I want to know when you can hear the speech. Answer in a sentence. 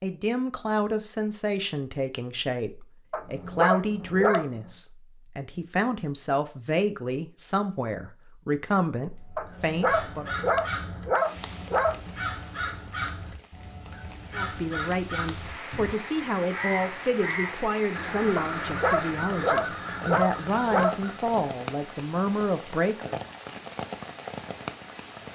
The speech can be heard from 0.0 to 10.3 s and from 14.3 to 23.1 s.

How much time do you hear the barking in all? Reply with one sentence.
You can hear the barking for 7 seconds altogether.